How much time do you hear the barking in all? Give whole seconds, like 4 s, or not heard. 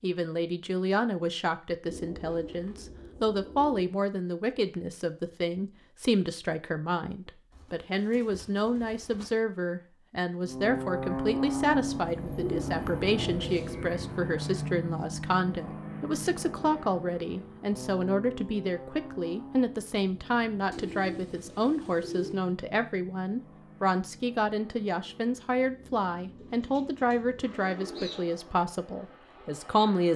not heard.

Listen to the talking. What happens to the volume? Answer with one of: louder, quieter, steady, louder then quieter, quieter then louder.
steady.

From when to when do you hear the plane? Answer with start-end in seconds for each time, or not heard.
10.4-30.1.